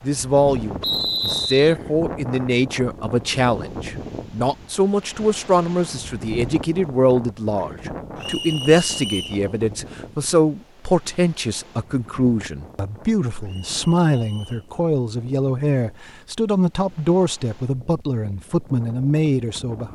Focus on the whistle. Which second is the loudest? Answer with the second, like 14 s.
1 s.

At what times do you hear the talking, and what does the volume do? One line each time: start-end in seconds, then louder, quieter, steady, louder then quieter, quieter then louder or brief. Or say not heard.
0.0-19.8 steady.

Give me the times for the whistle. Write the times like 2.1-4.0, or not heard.
0.8-1.8, 8.2-9.4, 13.4-14.7.